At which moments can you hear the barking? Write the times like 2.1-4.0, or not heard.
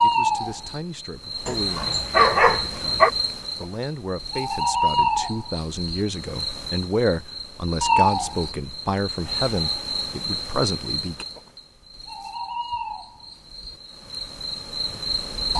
1.4-3.1.